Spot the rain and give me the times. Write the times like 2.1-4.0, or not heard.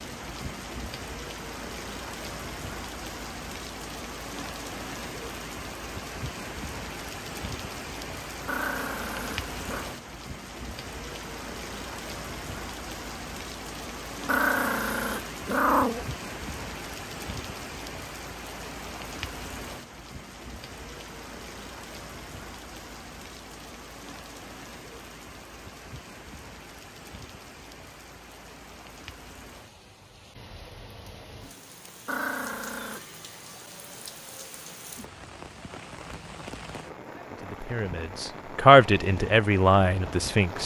0.0-40.6.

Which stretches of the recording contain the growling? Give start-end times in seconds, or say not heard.
8.4-9.8, 14.2-16.1, 32.0-33.0.